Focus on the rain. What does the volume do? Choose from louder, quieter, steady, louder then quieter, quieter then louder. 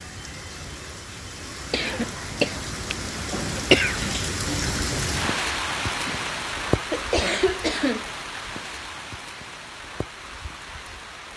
louder then quieter.